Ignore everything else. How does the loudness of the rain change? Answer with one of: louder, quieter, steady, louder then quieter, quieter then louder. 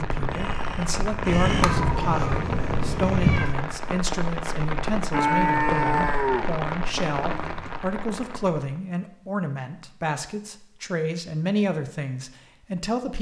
steady.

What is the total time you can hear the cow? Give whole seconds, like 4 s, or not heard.
3 s.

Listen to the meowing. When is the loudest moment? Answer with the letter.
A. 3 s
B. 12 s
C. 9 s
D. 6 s
A.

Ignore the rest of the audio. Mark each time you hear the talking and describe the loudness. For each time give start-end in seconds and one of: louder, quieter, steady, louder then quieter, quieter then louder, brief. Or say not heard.
0.0-13.1 steady.